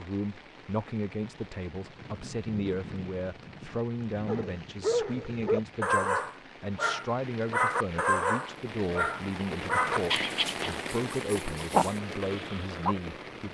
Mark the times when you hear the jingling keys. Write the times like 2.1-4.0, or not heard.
not heard.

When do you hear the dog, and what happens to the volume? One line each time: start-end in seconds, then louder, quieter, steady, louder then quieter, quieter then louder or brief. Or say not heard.
4.2-12.9 steady.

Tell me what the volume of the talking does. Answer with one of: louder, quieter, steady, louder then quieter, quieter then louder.
steady.